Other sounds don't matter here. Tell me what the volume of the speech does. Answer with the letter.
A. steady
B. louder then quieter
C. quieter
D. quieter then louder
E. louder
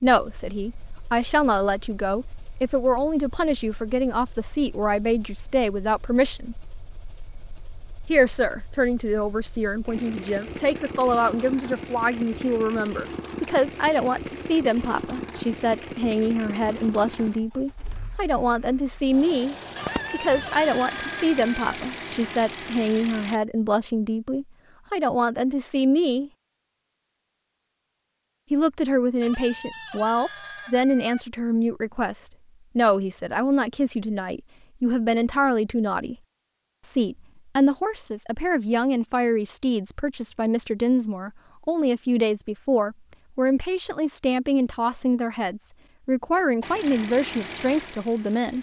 A.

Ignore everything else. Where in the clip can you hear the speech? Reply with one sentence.
You can hear the speech from 0.0 to 6.5 s, from 8.1 to 26.3 s, from 28.5 to 36.1 s and from 36.8 to 48.5 s.